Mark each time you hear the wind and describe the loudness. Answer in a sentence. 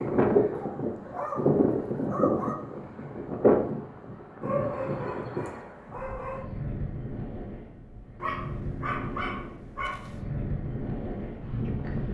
The wind can be heard from 0.0 to 12.0 s, getting quieter.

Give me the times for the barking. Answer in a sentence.
The barking can be heard from 0.6 to 2.5 s, from 4.4 to 6.5 s and from 8.2 to 10.1 s.